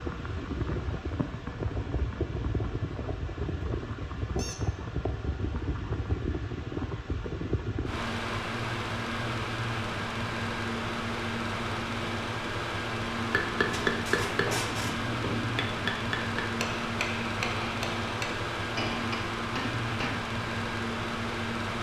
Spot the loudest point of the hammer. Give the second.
14 s.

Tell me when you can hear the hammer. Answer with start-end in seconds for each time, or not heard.
13.2-20.2.